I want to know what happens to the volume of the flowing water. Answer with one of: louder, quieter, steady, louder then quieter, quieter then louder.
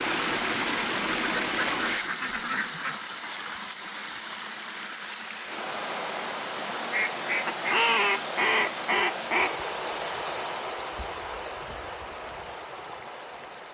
quieter.